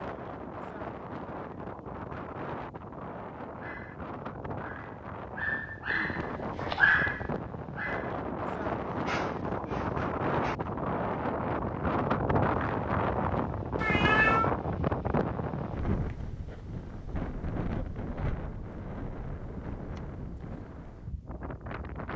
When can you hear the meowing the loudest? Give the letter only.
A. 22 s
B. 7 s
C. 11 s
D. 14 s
D.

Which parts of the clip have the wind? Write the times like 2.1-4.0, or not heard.
0.0-22.1.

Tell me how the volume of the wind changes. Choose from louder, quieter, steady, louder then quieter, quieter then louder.
louder then quieter.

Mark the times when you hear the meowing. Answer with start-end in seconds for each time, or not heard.
5.9-7.3, 13.8-14.5.